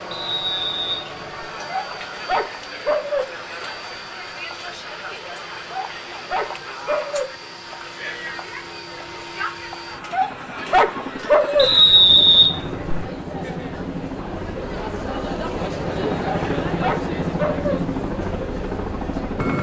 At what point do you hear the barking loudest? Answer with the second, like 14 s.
11 s.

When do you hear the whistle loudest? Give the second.
12 s.